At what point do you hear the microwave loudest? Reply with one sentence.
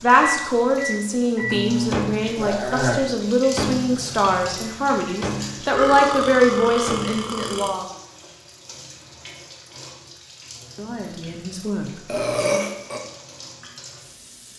The volume of the microwave peaks at 2 seconds.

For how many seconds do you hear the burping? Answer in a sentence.
The burping can be heard for 4 seconds in total.